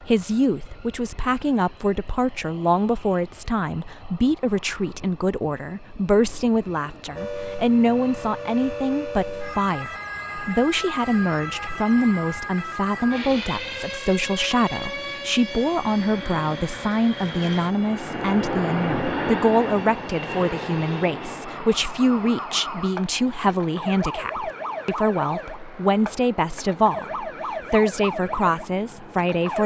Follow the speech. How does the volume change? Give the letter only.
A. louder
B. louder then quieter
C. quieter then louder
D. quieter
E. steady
E.